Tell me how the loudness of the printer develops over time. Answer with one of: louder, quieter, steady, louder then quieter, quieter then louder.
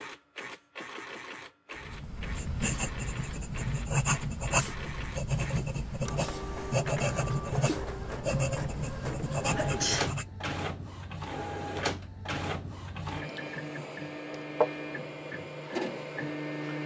louder.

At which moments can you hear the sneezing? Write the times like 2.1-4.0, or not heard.
9.3-10.1.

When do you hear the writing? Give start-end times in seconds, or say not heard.
1.8-10.2.